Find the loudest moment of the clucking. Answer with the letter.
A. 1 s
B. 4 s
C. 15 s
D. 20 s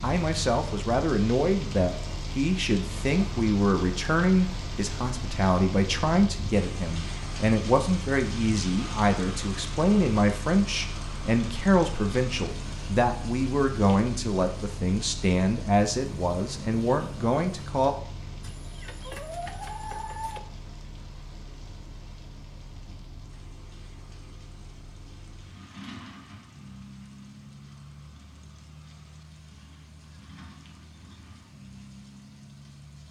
D.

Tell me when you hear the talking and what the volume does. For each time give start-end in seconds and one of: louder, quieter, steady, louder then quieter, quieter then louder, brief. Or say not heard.
0.0-17.9 steady.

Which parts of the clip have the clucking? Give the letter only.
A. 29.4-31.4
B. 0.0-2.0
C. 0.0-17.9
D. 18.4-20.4
D.